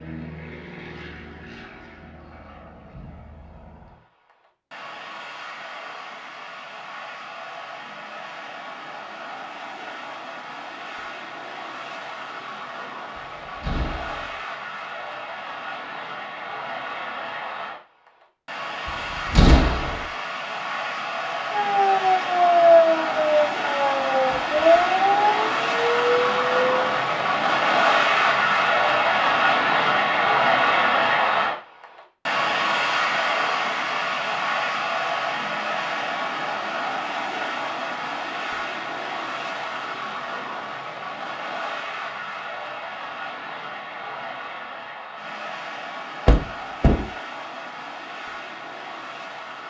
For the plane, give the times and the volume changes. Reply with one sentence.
You can hear the plane from 0.0 to 49.6 s, getting louder then quieter.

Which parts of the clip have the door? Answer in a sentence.
You can hear the door from 13.2 to 14.3 s, from 18.9 to 20.1 s and from 46.2 to 47.1 s.